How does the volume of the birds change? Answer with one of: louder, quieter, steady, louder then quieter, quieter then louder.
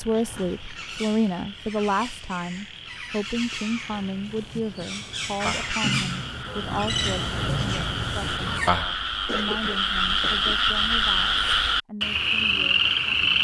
louder.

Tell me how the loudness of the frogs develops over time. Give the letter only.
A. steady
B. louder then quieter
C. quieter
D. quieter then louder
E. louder
E.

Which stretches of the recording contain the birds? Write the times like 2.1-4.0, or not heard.
0.0-8.7.